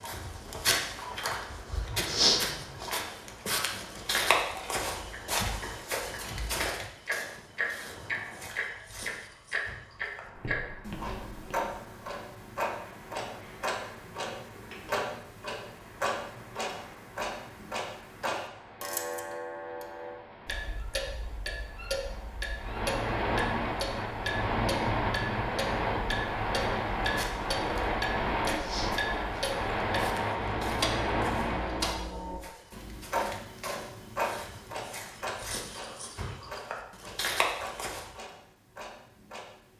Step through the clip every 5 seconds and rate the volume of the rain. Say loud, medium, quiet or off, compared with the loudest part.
quiet, quiet, quiet, quiet, loud, loud, loud, off.